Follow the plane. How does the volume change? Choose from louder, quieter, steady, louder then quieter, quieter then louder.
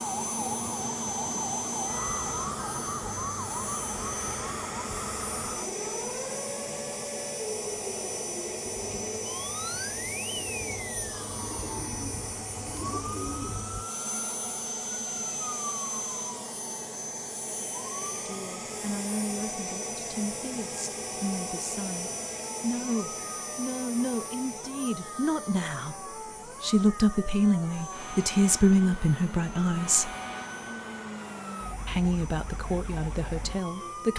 quieter.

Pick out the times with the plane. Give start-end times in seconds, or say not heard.
0.0-34.1.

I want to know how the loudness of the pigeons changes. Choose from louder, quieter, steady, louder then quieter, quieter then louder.
louder.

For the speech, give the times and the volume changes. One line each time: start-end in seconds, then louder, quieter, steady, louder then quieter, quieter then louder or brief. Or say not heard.
18.1-30.1 louder
31.9-34.1 brief.